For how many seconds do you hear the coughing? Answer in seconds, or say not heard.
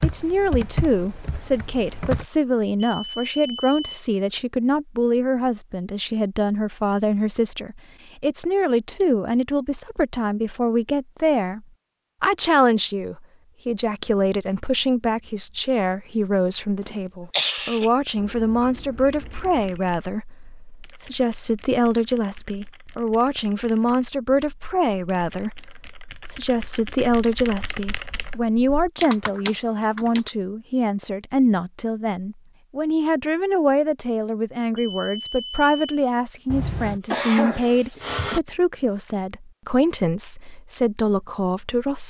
3 s.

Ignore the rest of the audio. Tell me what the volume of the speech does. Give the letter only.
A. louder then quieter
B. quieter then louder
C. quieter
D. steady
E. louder
D.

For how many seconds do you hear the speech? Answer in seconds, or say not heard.
42 s.